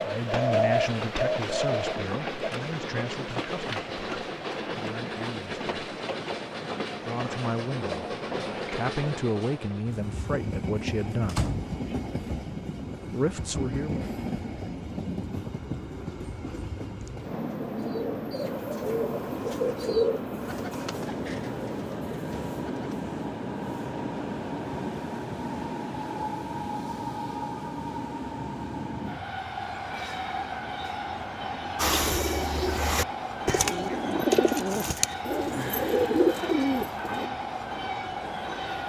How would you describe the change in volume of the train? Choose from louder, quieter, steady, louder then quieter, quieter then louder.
steady.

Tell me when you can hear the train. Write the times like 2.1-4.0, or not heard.
0.0-38.8.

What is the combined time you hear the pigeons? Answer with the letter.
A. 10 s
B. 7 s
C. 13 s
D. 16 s
C.